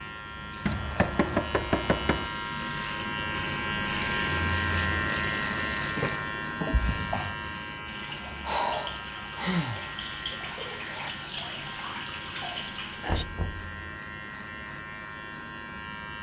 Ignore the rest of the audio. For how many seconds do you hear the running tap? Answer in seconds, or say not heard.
9 s.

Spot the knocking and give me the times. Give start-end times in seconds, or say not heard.
0.7-2.3, 6.7-7.3, 13.1-13.7.